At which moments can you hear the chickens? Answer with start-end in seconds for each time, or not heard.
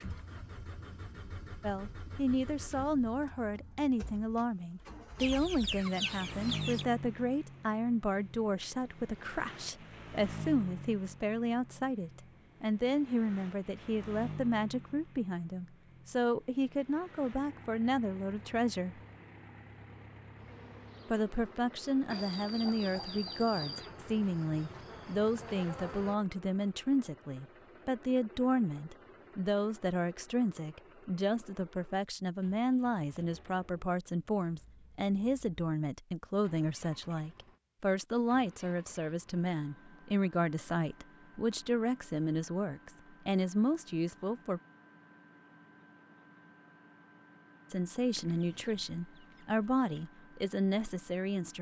5.2-6.8, 22.1-23.9, 48.1-50.1.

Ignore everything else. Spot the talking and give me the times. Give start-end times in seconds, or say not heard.
1.6-19.0, 21.1-44.6, 47.7-51.5.